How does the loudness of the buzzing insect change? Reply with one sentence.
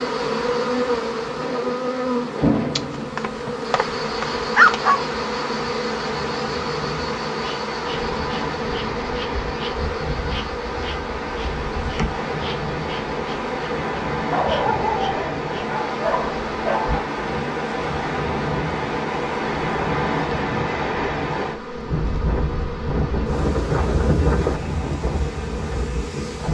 The loudness of the buzzing insect goes down.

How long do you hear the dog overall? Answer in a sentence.
You can hear the dog for 5 seconds altogether.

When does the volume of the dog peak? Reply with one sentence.
The volume of the dog peaks at 5 seconds.